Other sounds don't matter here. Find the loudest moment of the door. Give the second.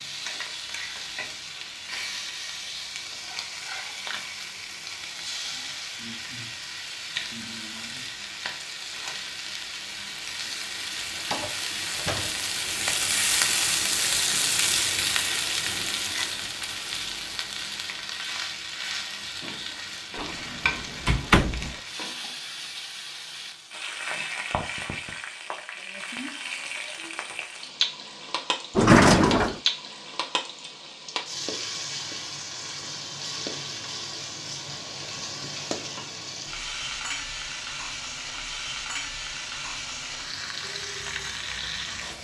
29 s.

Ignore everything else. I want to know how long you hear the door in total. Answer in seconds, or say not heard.
4 s.